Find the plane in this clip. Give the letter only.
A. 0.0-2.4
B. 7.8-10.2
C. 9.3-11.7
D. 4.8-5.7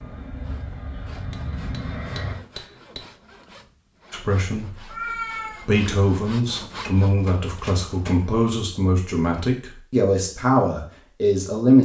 A.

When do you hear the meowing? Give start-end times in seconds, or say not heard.
4.8-5.7.